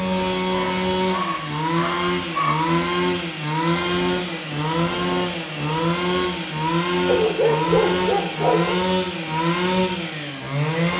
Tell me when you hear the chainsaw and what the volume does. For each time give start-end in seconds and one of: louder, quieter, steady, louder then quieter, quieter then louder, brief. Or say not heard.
0.0-10.9 steady.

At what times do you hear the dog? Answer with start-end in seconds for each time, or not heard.
0.5-2.6, 7.0-8.8.